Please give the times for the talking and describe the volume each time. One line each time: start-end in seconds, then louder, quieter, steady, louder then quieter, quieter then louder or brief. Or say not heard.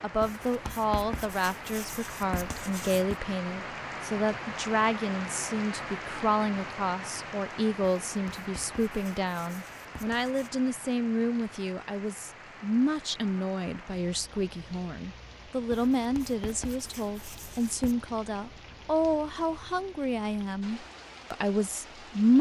0.0-22.3 steady.